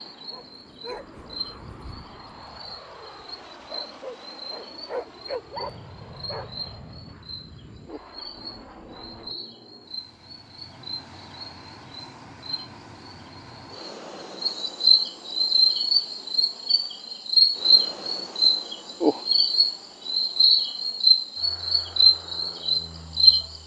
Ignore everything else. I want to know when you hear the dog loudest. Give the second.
5 s.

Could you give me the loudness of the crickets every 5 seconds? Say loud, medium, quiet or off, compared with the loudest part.
quiet, quiet, medium, loud, loud.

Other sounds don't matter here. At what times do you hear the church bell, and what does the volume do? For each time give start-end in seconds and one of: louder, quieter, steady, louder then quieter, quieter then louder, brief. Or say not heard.
not heard.